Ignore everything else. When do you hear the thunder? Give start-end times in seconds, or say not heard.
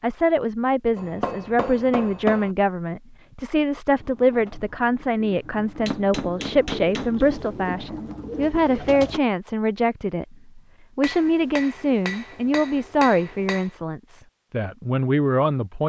not heard.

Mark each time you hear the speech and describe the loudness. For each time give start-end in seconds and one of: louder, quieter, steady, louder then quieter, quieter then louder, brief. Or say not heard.
0.0-15.8 steady.